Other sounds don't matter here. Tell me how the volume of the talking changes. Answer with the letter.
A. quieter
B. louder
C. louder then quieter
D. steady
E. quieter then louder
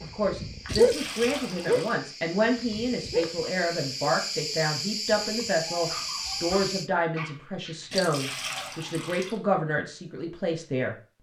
D.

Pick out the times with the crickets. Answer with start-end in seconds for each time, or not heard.
0.0-6.9.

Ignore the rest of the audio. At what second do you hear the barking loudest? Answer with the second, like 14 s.
1 s.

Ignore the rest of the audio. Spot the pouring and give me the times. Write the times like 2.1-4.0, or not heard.
0.7-1.9, 7.9-9.4.